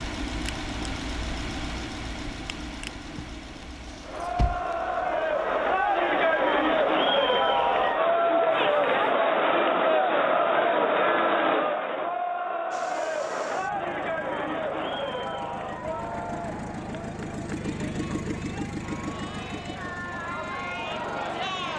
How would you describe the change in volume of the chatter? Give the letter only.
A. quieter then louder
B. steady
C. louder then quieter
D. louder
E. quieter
E.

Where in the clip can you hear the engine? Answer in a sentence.
You can hear the engine from 0.0 to 9.2 s and from 12.7 to 21.7 s.